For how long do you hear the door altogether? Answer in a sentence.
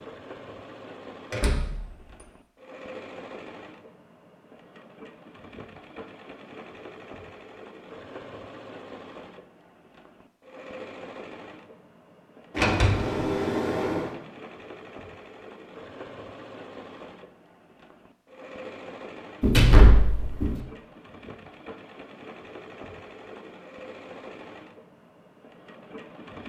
The door can be heard for 3 seconds in total.